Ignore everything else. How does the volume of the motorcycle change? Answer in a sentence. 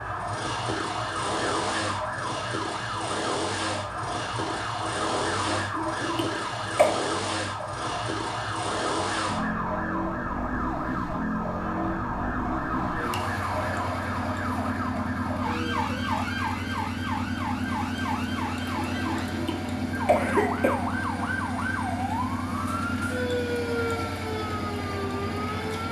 The volume of the motorcycle stays about the same.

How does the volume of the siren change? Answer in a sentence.
The volume of the siren stays about the same.